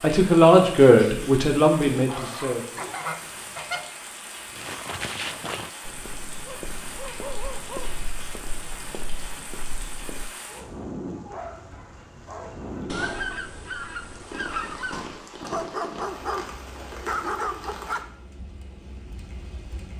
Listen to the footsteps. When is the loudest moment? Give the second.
5 s.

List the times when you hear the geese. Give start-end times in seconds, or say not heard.
2.8-3.9, 12.8-15.1.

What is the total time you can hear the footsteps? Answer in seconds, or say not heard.
6 s.